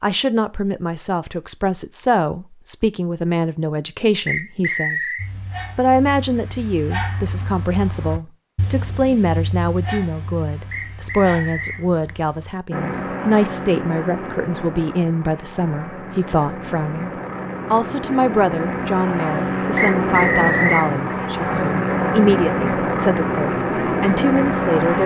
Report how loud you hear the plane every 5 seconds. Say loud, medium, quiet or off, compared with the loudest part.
off, off, medium, medium, loud.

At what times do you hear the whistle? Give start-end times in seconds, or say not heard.
4.2-5.2, 10.7-11.8, 19.8-20.9.